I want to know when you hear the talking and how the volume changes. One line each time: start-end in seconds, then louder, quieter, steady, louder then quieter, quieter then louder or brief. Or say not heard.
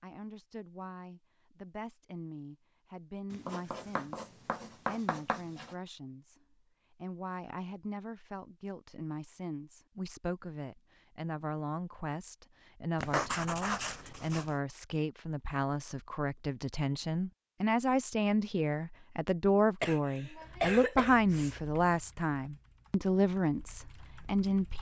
0.0-24.7 louder.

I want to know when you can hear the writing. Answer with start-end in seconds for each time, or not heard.
3.3-5.8, 13.0-14.6.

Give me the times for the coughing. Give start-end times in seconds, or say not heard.
19.8-21.6.